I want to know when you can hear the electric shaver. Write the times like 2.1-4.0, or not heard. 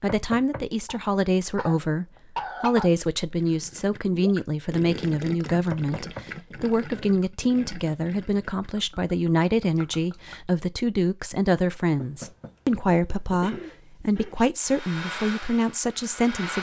not heard.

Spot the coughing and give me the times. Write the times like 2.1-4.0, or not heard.
0.8-2.9, 13.4-14.4.